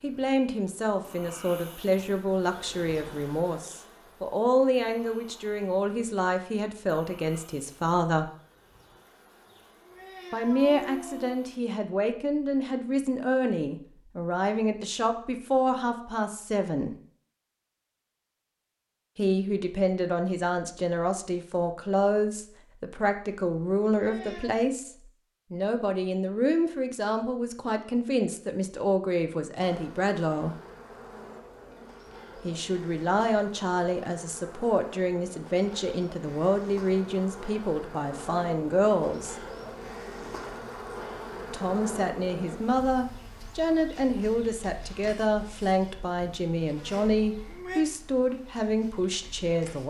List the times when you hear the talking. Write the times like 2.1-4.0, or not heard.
0.0-8.3, 10.3-16.9, 19.1-24.9, 25.5-30.6, 32.4-39.4, 41.5-49.8.